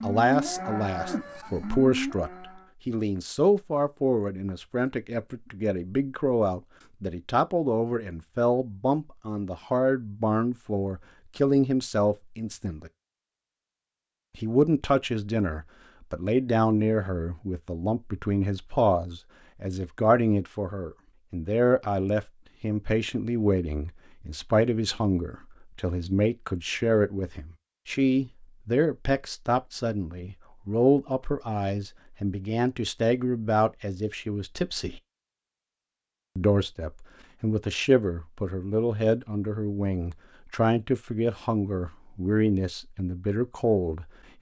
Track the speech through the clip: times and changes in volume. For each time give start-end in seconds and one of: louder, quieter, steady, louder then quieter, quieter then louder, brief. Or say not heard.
0.0-12.9 steady
14.3-35.0 steady
36.4-44.3 steady.